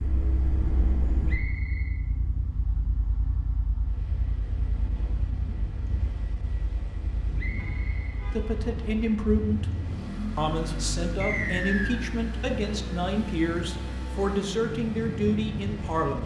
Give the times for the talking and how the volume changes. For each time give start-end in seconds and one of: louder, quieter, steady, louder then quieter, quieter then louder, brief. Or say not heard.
8.3-9.7 brief
10.3-16.2 steady.